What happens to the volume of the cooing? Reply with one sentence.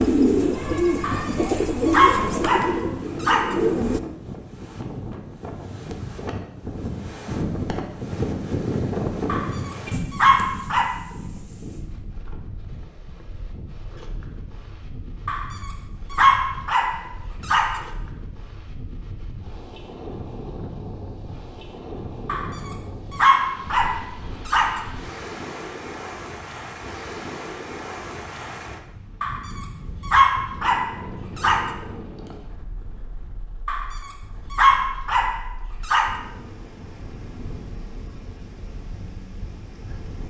The loudness of the cooing goes down.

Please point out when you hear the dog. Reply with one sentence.
The dog can be heard from 1.0 to 3.6 s, from 9.2 to 10.9 s, from 15.2 to 17.8 s, from 22.2 to 24.9 s, from 29.2 to 31.7 s and from 33.6 to 36.1 s.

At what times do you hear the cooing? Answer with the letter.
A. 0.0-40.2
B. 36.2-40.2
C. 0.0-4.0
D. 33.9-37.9
C.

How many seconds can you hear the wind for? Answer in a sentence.
You can hear the wind for 40 seconds altogether.